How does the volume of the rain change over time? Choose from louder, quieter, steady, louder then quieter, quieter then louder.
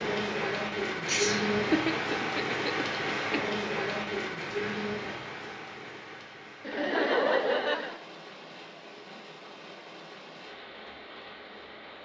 quieter.